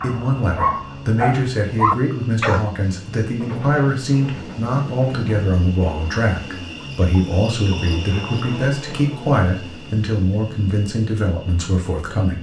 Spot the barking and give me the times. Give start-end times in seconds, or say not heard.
0.0-2.7.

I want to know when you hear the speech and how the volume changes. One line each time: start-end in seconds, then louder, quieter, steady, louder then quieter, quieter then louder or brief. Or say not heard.
0.0-12.3 steady.